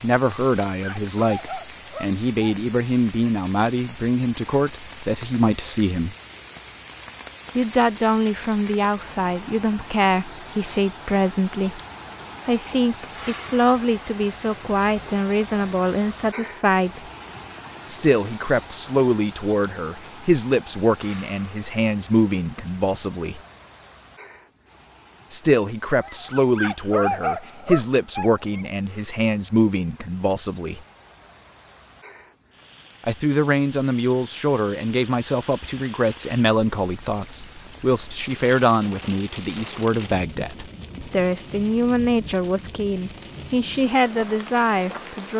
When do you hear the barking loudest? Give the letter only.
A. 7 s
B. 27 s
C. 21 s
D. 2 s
B.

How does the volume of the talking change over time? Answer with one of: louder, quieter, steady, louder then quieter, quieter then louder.
steady.